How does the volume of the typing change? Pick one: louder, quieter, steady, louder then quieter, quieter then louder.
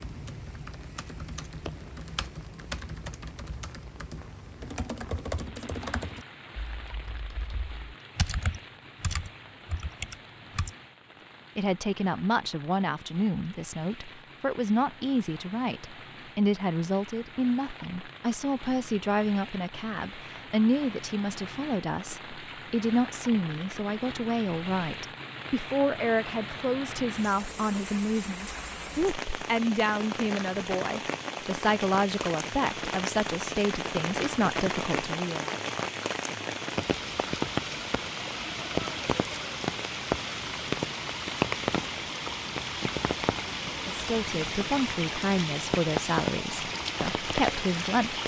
louder.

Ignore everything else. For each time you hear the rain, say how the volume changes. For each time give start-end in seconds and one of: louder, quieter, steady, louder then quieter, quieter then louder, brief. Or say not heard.
0.0-48.2 louder.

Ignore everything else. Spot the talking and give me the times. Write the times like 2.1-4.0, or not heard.
11.6-35.5, 43.6-48.2.